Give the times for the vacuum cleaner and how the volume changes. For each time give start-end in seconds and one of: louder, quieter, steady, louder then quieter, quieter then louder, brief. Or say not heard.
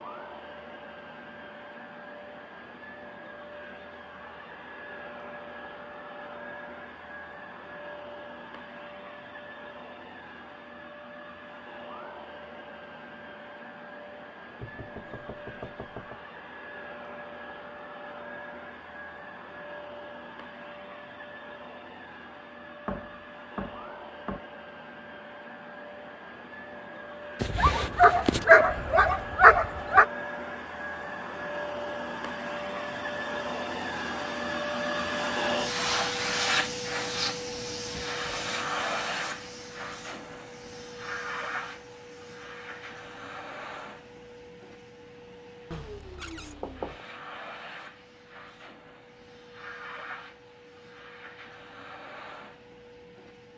0.0-53.5 louder then quieter.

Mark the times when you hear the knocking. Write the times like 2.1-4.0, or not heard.
14.6-16.2, 22.9-24.4, 45.7-47.0.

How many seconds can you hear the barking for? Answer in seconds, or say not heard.
3 s.